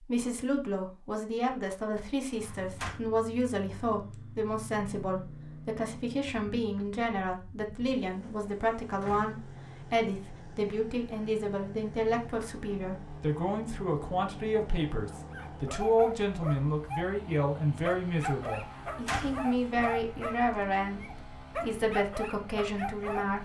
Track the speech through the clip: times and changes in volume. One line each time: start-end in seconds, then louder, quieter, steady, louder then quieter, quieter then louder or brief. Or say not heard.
0.0-23.4 steady.